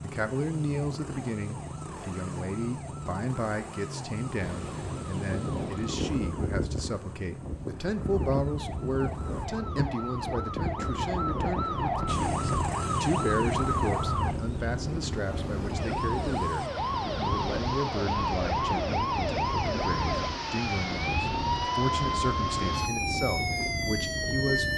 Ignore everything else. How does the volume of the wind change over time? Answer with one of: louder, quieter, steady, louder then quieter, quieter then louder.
steady.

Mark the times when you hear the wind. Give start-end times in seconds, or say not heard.
4.4-24.7.